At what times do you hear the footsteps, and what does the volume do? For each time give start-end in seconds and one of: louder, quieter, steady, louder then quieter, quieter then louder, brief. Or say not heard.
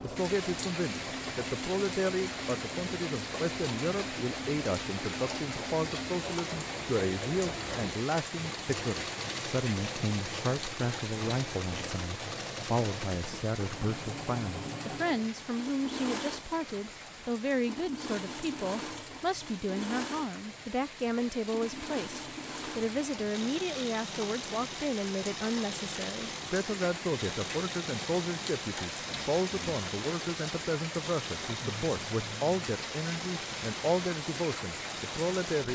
not heard.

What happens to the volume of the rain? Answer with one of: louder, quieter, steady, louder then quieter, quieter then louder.
quieter then louder.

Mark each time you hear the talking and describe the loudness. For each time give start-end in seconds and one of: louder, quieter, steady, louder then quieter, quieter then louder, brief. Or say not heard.
0.0-35.6 steady.